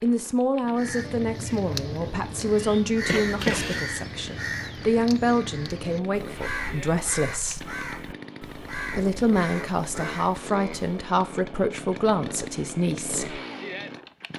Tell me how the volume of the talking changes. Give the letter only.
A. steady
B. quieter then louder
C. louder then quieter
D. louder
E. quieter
A.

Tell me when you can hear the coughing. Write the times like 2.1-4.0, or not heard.
3.0-3.9.